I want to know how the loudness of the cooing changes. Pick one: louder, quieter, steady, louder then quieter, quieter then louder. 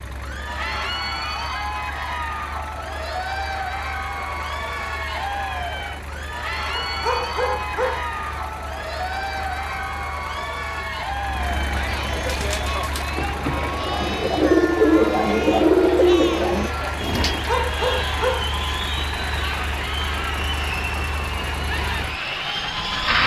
louder then quieter.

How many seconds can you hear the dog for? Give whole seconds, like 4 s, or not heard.
3 s.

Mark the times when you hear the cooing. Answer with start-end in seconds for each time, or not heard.
12.2-17.6.